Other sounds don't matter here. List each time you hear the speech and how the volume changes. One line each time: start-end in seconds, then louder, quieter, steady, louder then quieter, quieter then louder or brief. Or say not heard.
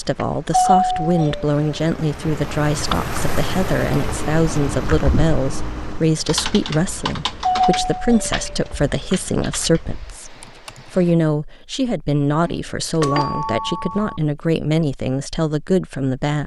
0.0-16.4 steady.